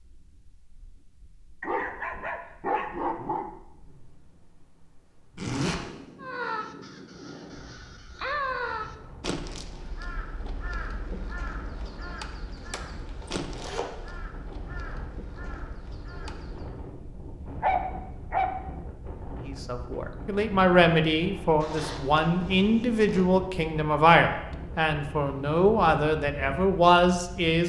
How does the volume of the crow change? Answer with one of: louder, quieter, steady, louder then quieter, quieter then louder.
quieter.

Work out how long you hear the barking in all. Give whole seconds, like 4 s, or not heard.
3 s.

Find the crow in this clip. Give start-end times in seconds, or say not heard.
6.2-16.8.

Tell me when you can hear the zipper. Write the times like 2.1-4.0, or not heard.
5.3-5.8, 12.6-14.2, 21.6-23.2.